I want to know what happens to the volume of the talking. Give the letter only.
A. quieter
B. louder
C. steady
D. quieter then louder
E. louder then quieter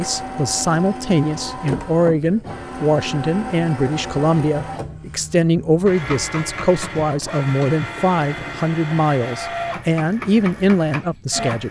C.